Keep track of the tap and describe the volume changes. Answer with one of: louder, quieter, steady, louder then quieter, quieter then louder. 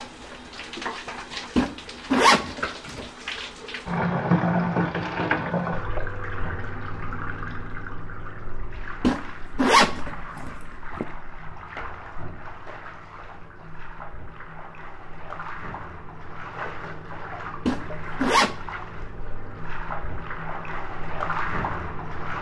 quieter then louder.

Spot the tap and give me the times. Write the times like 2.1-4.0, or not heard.
0.0-22.3.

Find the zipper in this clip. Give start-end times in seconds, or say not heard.
1.6-3.0, 9.0-11.1, 17.6-18.6.